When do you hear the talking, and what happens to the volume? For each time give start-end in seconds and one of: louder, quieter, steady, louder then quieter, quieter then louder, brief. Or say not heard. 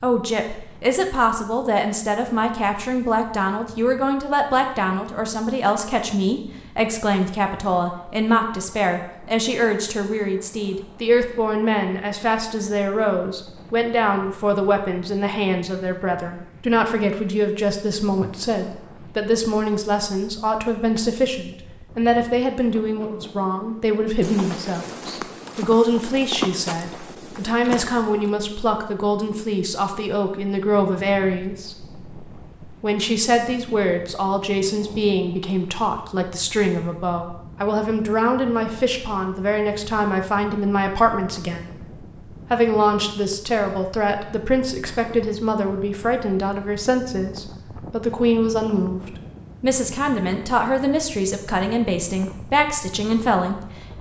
0.0-41.9 steady
42.5-53.9 steady.